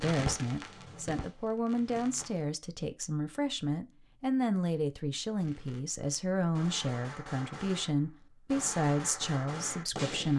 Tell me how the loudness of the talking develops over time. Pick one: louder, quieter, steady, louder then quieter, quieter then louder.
steady.